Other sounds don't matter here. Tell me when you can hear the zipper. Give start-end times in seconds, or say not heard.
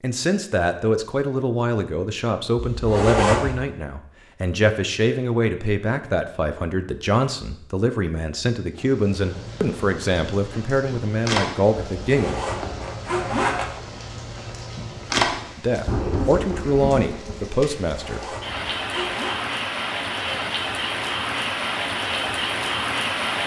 2.5-3.6, 12.0-13.7, 17.9-19.4.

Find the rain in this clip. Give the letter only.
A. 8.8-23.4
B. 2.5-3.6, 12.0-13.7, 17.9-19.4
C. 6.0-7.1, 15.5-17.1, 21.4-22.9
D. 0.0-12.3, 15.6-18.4
A.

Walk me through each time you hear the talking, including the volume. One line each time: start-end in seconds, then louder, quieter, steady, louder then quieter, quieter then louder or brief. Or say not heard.
0.0-12.3 steady
15.6-18.4 brief.